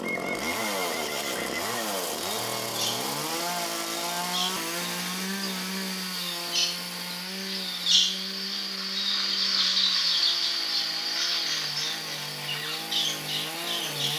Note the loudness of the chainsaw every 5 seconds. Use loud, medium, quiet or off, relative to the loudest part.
loud, medium, medium.